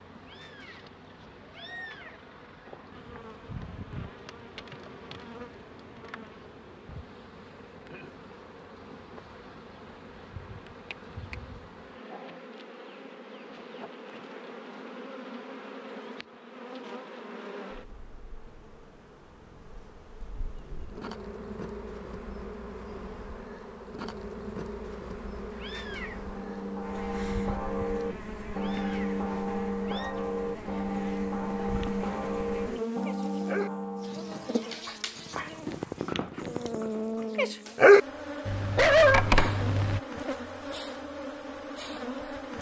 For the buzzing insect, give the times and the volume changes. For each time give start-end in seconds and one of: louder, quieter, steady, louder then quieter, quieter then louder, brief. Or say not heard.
0.0-42.5 louder.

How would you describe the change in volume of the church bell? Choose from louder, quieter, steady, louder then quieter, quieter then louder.
steady.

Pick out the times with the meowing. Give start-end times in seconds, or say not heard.
0.2-2.2, 25.5-26.2, 28.5-30.1.